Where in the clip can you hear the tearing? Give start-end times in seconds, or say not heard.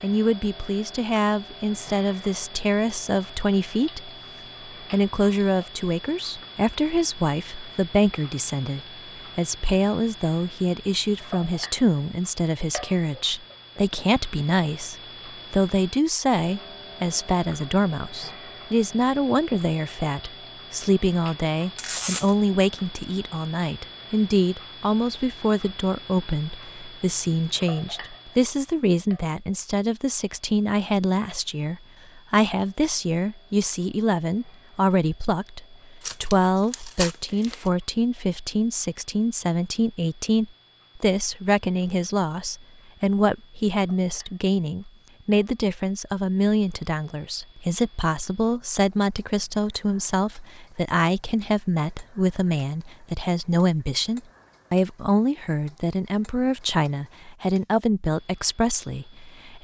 21.8-22.4, 36.0-37.7.